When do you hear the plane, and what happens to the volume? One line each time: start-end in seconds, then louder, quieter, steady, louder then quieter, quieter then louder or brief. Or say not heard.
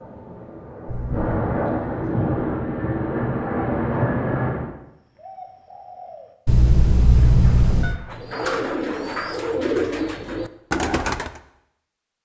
0.0-4.8 louder.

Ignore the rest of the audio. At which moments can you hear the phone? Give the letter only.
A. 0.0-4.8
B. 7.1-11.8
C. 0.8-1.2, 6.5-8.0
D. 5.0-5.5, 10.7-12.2
C.